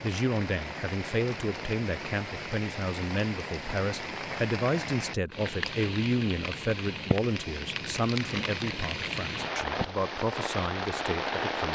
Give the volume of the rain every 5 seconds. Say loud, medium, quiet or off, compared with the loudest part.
medium, loud, loud.